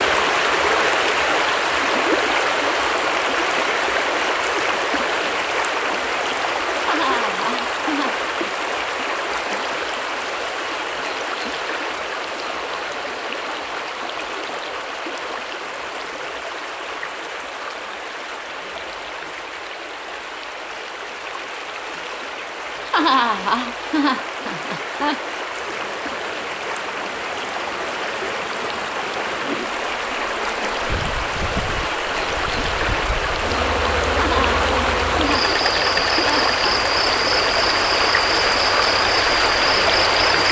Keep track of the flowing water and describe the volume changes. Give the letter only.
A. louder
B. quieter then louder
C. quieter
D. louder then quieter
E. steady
B.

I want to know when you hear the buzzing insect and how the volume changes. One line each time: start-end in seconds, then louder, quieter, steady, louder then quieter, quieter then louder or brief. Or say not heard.
25.6-40.4 louder.